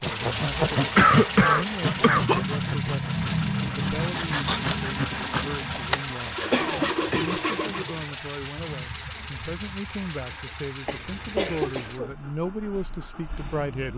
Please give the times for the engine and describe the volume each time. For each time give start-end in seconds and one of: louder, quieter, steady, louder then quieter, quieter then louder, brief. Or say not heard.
0.0-13.9 quieter.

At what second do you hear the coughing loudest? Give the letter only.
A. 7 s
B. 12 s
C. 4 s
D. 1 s
D.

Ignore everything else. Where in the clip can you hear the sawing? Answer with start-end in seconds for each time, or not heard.
0.0-8.0.